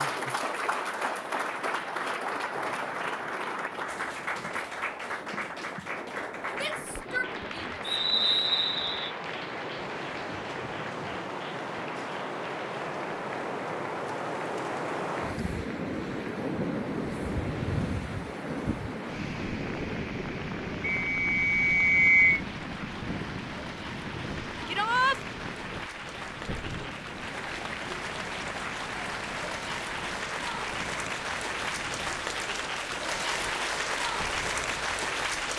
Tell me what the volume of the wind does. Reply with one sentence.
The loudness of the wind goes up, then down.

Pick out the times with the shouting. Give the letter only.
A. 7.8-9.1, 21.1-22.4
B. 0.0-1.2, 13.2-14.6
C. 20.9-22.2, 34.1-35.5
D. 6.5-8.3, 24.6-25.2
D.